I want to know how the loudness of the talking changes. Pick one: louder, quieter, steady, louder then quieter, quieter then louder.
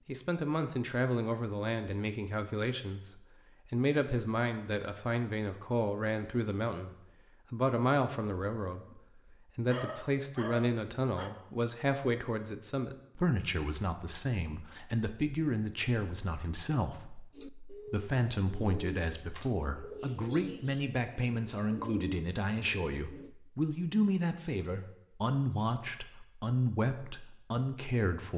steady.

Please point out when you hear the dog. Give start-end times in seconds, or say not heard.
9.7-11.3.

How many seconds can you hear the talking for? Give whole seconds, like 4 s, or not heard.
28 s.